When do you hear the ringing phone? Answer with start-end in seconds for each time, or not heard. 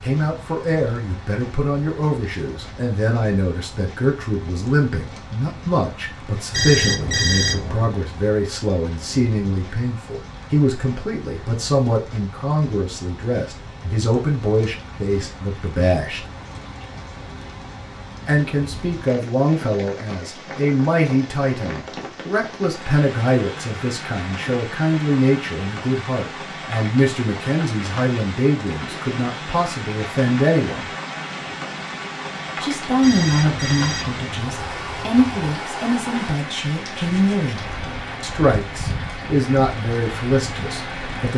6.5-8.0, 33.0-35.4.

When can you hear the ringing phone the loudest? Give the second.
7 s.